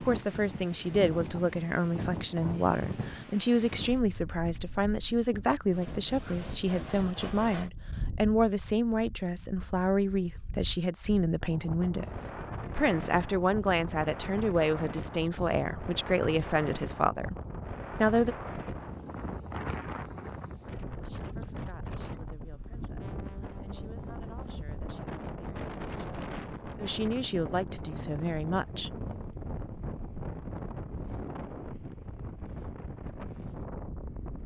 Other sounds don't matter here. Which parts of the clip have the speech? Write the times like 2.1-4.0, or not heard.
0.0-17.4, 17.9-18.4, 20.6-28.9.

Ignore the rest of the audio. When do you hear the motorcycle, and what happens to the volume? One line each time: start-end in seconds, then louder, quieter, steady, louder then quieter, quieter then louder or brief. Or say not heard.
not heard.